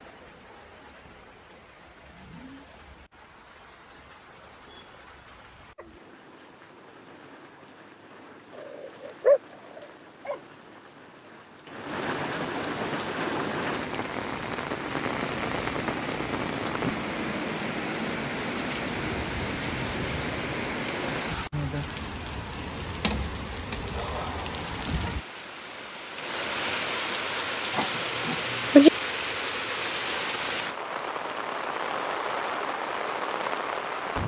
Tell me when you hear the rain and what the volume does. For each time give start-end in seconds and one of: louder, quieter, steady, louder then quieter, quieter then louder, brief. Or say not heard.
0.0-34.2 louder.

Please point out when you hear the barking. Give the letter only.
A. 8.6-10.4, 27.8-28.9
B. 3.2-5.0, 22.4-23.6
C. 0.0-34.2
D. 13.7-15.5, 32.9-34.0
A.